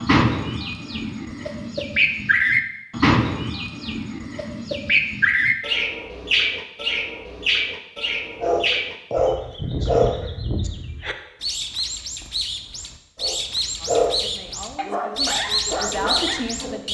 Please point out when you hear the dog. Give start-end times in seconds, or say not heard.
8.4-10.7, 13.2-16.8.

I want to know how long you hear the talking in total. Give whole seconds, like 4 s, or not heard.
3 s.